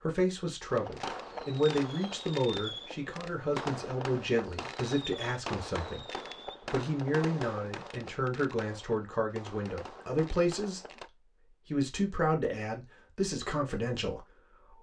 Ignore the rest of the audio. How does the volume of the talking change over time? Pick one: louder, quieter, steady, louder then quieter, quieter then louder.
steady.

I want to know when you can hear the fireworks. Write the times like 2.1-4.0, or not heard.
0.7-11.1.